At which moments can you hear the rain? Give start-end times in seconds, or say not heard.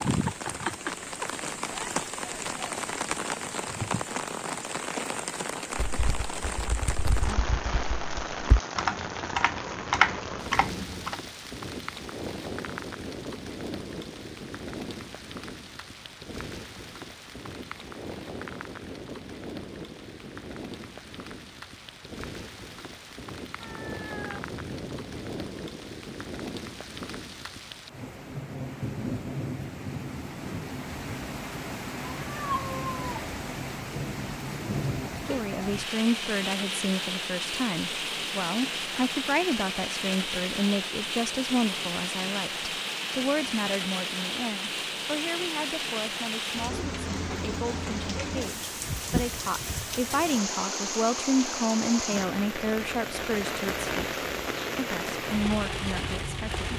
0.0-56.7.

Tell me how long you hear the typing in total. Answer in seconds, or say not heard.
5 s.